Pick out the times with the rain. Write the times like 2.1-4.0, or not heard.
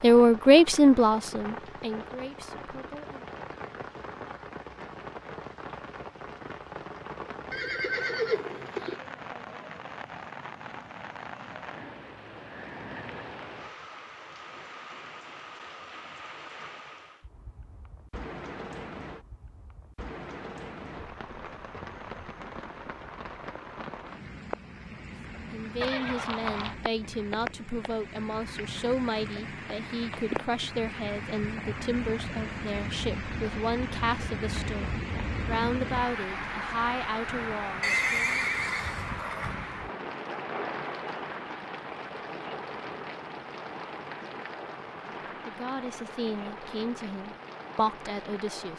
0.0-48.7.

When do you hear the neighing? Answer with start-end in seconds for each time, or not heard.
7.5-9.0, 25.8-26.8, 37.8-39.5.